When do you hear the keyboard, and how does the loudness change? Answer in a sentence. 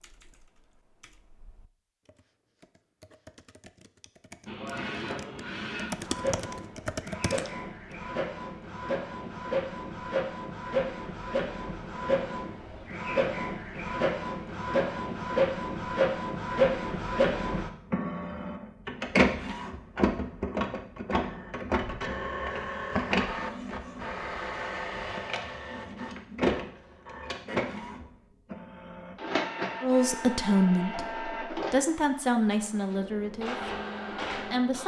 You can hear the keyboard from 0.0 to 7.6 s, getting louder.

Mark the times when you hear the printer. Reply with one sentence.
The printer can be heard from 4.5 to 34.8 s.